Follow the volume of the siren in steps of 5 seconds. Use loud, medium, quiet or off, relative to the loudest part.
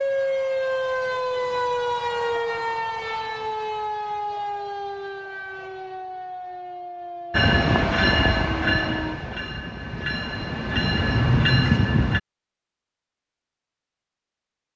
loud, medium, off.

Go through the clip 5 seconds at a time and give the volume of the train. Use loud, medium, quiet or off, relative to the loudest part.
off, loud, loud.